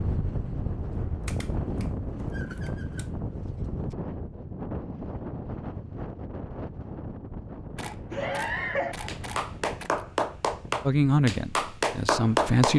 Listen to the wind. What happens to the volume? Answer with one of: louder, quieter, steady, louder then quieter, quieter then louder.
quieter.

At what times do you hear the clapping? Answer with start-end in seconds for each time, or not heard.
8.1-12.7.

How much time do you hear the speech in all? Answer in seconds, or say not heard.
2 s.